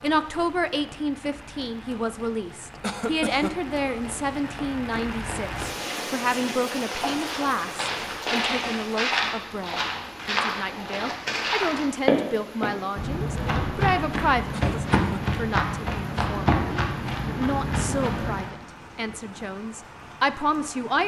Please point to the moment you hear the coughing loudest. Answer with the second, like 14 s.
3 s.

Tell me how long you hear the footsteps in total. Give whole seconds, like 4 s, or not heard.
12 s.